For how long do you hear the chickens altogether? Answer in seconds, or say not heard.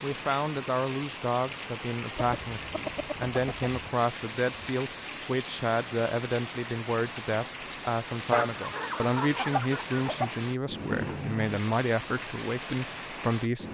4 s.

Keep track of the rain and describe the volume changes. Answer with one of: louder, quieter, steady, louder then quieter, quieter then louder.
steady.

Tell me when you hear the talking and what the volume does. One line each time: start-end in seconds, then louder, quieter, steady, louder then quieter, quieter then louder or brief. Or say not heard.
0.0-13.7 steady.